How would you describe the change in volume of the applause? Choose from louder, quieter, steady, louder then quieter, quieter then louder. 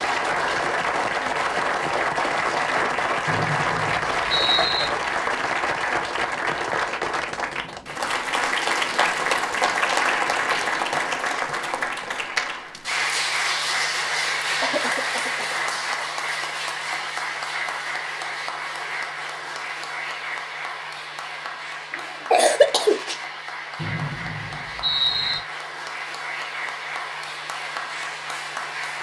quieter.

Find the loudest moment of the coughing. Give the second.
22 s.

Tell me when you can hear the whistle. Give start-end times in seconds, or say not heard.
3.2-4.9, 23.8-25.4.